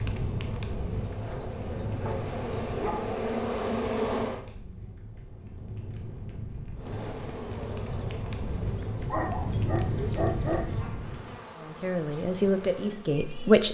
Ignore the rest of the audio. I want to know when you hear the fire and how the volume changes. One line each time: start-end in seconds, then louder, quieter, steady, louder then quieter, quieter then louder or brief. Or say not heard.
0.0-11.4 quieter then louder.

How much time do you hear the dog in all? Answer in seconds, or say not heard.
3 s.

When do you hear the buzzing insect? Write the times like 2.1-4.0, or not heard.
0.0-4.5, 6.8-13.7.